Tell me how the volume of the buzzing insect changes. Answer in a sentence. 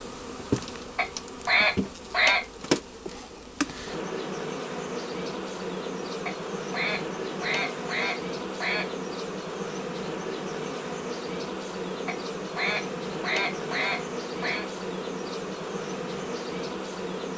The loudness of the buzzing insect stays about the same.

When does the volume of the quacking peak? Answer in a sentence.
The volume of the quacking peaks at 2 seconds.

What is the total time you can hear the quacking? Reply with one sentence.
You can hear the quacking for 7 seconds altogether.